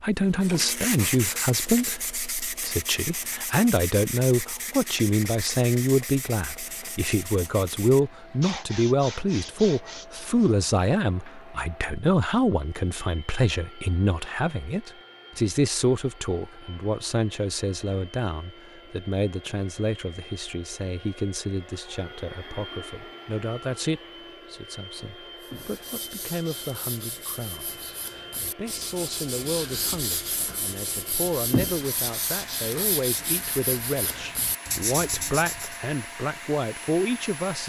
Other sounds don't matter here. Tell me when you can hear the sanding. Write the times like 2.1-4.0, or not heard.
0.3-10.6, 25.4-35.8.